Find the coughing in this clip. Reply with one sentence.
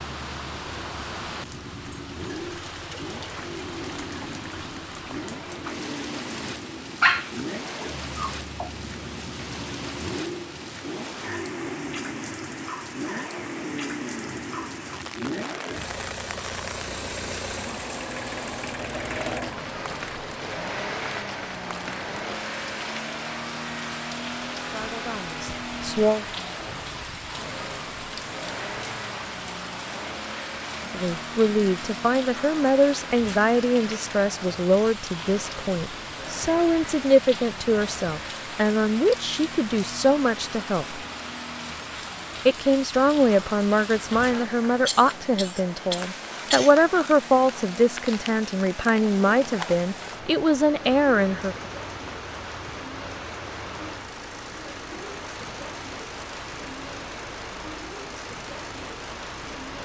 The coughing can be heard from 44.9 to 46.8 s.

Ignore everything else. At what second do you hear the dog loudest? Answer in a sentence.
The volume of the dog peaks at 7 seconds.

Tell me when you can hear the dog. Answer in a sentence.
The dog can be heard from 7.0 to 8.7 s.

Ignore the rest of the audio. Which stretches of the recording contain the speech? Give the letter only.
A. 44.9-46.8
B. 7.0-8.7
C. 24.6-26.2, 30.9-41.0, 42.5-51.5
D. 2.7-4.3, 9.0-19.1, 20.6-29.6
C.